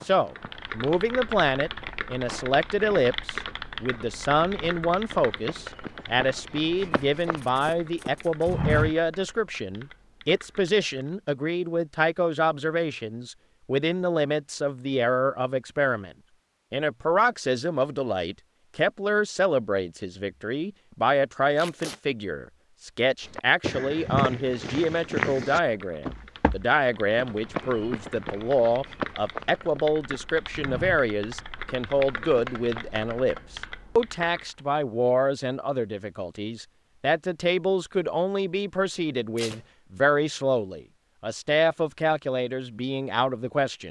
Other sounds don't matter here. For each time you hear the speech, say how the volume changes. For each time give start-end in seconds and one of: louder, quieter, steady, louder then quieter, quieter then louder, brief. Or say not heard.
0.0-16.1 steady
16.7-43.8 steady.